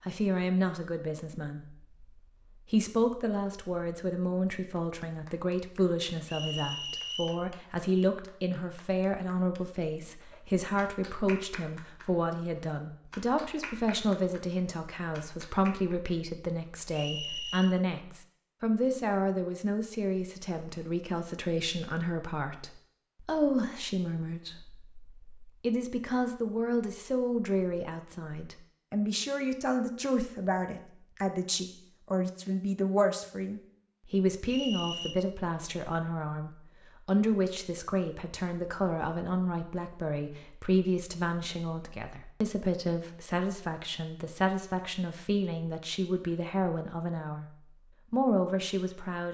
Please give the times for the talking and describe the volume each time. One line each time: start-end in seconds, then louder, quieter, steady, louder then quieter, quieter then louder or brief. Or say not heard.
0.0-47.5 steady
48.1-49.2 brief.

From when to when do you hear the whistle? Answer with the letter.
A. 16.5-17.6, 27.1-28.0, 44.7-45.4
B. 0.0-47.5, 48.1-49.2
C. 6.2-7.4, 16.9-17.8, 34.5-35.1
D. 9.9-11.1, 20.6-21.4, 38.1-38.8
C.